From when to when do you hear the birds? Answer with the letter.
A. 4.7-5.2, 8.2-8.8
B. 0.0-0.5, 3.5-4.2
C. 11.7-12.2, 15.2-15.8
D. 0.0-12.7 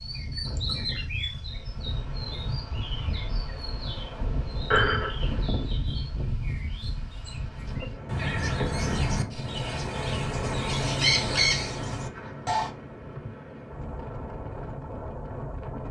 D.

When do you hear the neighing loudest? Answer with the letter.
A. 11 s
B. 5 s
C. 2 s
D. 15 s
B.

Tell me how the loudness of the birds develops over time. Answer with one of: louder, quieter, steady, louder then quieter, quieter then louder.
quieter then louder.